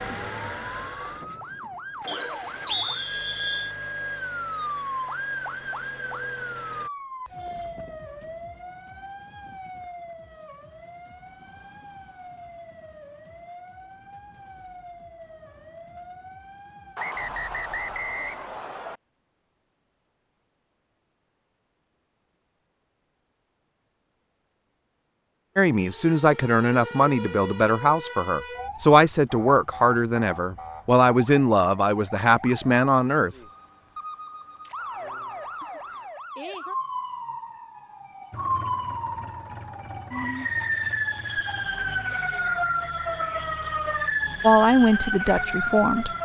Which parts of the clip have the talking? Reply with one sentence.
The talking can be heard from 25.6 to 33.4 s and from 44.4 to 46.1 s.